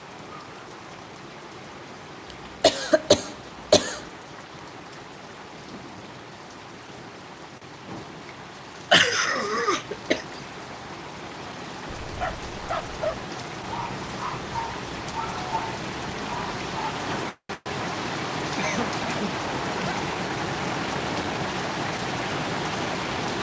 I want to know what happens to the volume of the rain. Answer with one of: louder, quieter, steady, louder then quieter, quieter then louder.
louder.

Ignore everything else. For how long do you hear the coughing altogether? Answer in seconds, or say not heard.
4 s.